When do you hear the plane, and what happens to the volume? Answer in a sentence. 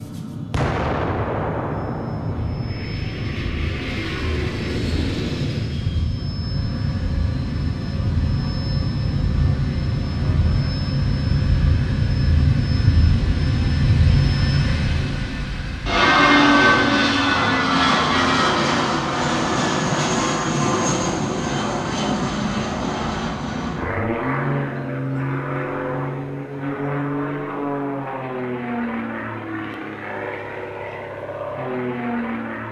The plane can be heard from 0.0 to 32.6 s, getting louder then quieter.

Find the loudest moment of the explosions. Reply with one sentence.
The volume of the explosions peaks at 1 second.